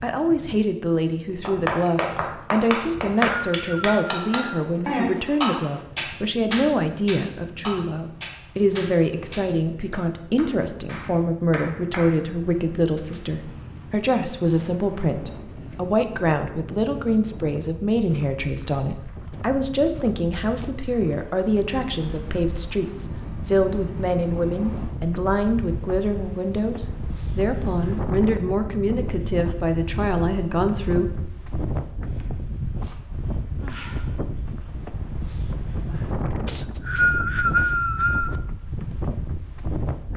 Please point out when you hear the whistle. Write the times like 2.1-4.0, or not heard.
2.8-4.7, 36.5-38.4.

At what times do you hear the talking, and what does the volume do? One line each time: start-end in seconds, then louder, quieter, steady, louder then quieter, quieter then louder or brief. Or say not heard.
0.0-31.1 steady.